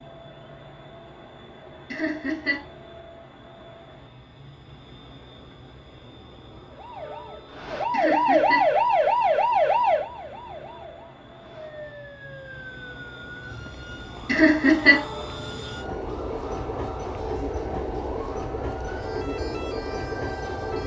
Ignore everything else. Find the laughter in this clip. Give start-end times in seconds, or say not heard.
1.9-2.6, 7.9-8.7, 14.2-15.0.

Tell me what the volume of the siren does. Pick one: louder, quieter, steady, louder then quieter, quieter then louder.
quieter.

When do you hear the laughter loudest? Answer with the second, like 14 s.
15 s.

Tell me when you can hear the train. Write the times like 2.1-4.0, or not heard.
0.0-20.8.